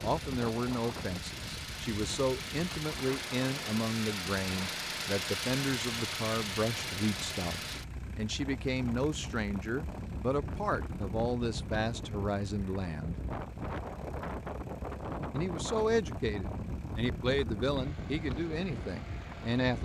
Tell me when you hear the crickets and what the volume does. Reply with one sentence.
The crickets can't be heard in this clip.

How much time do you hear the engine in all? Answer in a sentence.
The engine can be heard for 20 seconds in total.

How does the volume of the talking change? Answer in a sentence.
The loudness of the talking stays about the same.